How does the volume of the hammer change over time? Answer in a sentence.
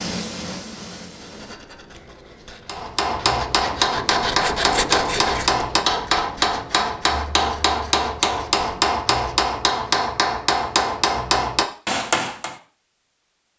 The loudness of the hammer stays about the same.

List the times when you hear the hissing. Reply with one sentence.
You can hear the hissing from 0.0 to 1.6 s.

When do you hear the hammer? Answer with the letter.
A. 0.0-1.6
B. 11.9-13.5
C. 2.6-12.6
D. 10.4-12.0
C.